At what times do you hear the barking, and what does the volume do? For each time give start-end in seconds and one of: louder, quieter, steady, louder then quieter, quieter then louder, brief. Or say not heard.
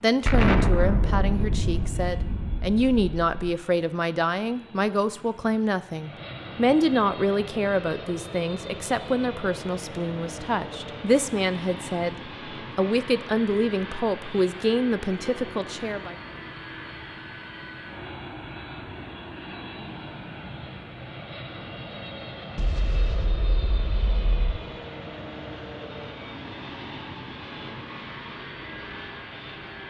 not heard.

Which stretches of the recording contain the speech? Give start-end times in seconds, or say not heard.
0.0-12.2, 12.8-16.1.